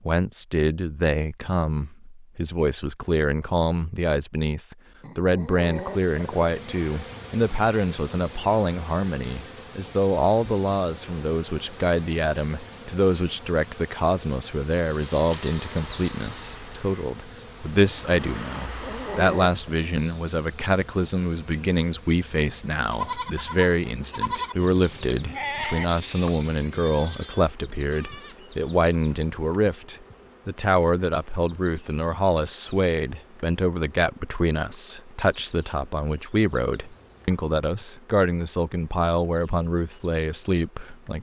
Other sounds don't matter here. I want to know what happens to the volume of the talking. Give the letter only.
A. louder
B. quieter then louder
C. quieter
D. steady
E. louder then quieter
D.